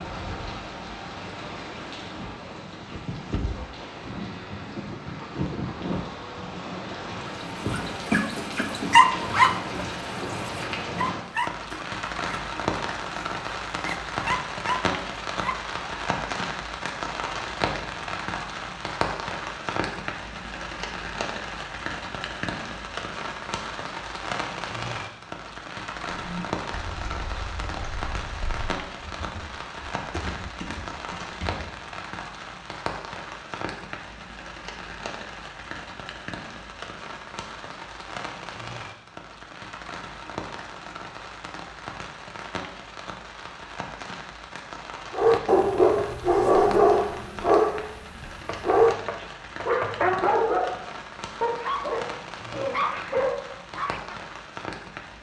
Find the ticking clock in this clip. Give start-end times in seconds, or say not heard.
not heard.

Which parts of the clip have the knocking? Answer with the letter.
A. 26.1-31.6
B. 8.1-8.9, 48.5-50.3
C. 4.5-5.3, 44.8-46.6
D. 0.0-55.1
B.